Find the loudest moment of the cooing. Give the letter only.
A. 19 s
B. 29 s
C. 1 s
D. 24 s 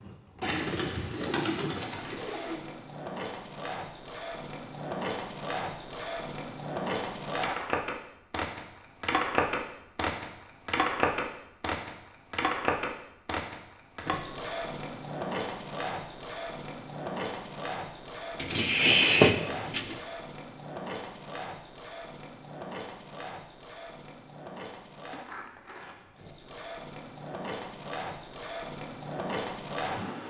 A.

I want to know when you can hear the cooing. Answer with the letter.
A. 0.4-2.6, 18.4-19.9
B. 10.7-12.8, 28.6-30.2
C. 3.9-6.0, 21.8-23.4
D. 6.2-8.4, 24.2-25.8
A.